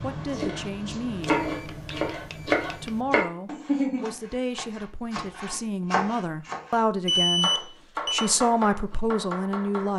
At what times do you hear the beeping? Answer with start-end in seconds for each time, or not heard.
1.2-3.0, 7.0-8.3.